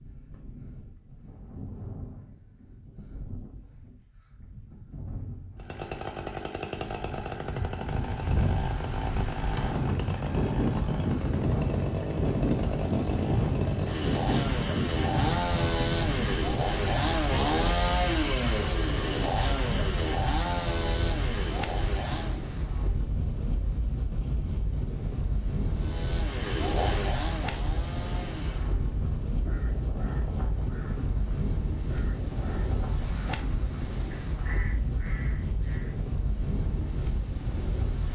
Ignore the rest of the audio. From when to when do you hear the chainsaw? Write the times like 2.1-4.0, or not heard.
5.5-22.4, 25.6-28.8.